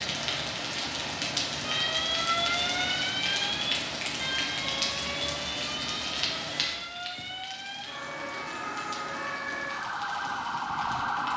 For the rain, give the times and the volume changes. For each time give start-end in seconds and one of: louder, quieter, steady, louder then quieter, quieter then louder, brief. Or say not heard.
0.0-11.3 quieter.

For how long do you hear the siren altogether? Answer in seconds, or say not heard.
10 s.